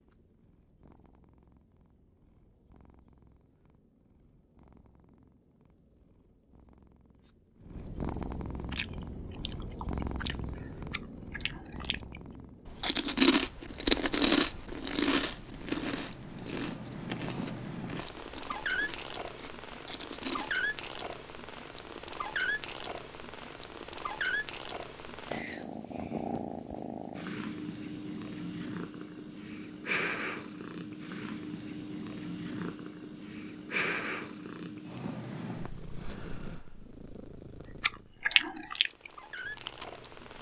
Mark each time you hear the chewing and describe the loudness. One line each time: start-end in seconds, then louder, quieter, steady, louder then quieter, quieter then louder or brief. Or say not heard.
8.7-20.6 louder then quieter
37.6-40.3 brief.